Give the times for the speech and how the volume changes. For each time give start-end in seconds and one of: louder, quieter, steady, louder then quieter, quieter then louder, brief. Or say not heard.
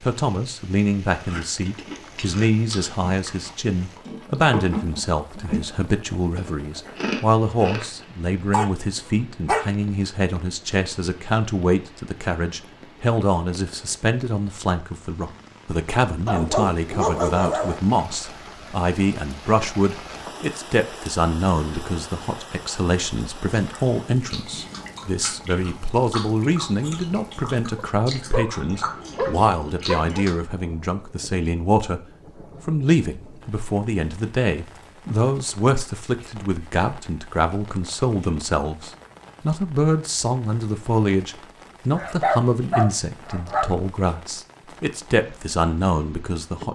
0.0-32.0 steady
32.6-46.6 steady.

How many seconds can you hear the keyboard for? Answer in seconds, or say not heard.
not heard.